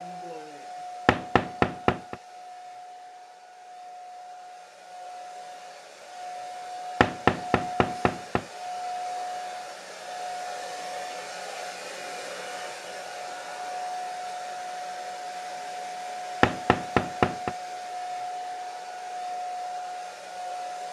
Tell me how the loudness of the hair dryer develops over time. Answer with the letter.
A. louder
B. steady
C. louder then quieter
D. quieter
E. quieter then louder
A.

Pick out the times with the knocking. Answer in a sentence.
The knocking can be heard from 1.1 to 2.1 s, from 7.0 to 8.4 s and from 16.4 to 17.6 s.